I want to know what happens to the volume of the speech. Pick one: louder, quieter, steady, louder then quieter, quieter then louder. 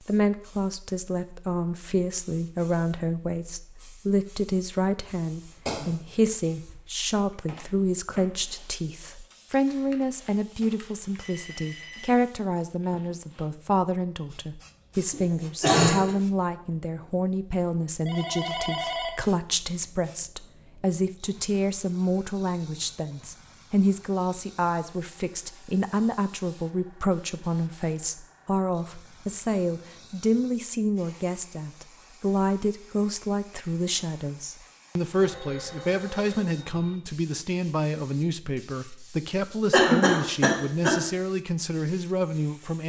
steady.